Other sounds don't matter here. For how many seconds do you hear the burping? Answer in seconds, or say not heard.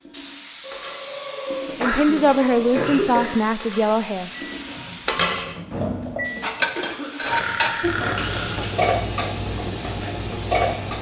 4 s.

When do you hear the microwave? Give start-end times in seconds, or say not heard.
4.2-6.7.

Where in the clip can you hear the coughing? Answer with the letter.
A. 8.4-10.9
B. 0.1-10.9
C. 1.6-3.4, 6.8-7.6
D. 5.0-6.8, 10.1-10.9
C.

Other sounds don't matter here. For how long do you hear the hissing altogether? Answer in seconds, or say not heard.
11 s.